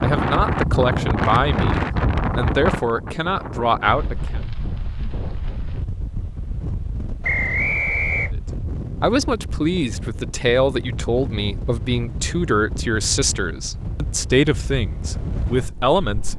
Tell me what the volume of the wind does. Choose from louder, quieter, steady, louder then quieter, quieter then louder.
quieter.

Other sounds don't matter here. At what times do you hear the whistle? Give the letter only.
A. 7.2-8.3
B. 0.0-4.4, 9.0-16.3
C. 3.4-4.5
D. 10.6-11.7
A.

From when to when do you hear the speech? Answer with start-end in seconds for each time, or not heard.
0.0-4.4, 9.0-16.3.